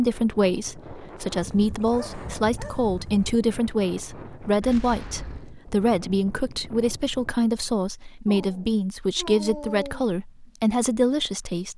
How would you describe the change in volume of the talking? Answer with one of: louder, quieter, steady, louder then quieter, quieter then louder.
steady.